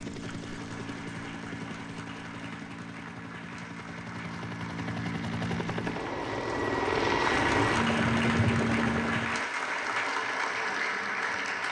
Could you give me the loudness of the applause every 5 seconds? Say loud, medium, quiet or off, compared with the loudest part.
quiet, loud, loud.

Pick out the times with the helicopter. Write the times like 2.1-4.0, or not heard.
0.0-9.4.